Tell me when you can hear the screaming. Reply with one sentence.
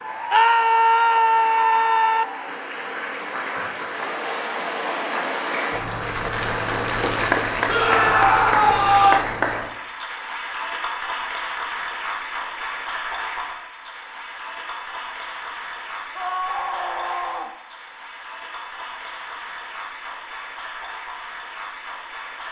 You can hear the screaming from 0.3 to 2.2 s, from 7.7 to 9.2 s and from 16.1 to 17.5 s.